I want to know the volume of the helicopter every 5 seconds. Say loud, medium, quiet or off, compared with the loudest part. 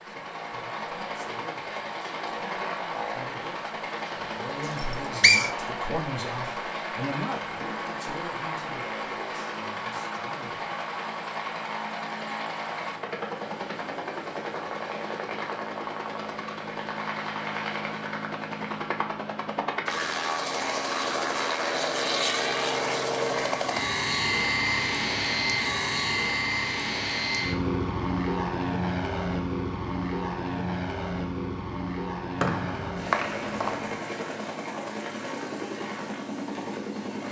medium, medium, medium, medium, loud, loud, medium, medium.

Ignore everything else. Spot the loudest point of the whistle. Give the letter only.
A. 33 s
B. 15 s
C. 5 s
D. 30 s
C.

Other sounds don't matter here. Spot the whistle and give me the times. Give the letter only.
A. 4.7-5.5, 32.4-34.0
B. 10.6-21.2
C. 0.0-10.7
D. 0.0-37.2
A.